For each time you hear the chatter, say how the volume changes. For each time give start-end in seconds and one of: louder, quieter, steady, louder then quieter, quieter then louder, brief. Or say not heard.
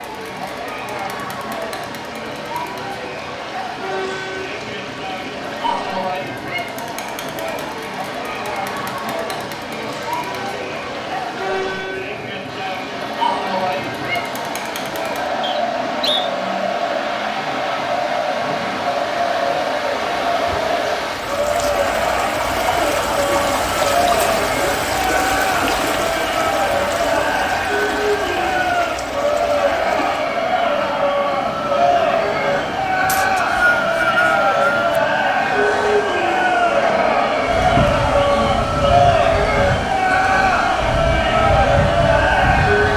0.0-42.9 louder.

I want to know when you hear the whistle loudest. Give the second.
34 s.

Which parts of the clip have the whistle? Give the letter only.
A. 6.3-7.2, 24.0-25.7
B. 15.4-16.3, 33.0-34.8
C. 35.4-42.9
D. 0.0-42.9
B.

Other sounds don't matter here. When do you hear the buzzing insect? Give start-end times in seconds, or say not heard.
35.4-42.9.